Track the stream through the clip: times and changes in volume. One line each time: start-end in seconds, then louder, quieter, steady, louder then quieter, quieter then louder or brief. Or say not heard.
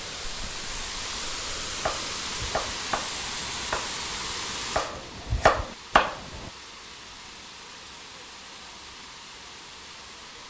0.0-10.4 quieter.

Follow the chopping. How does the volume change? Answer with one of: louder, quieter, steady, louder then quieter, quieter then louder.
louder.